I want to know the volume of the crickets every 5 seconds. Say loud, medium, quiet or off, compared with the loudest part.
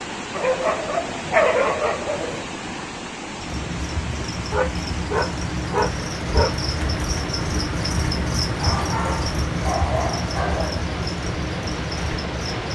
medium, loud, loud.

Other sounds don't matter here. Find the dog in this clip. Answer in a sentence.
You can hear the dog from 0.3 to 2.5 s, from 4.5 to 6.5 s and from 8.6 to 10.8 s.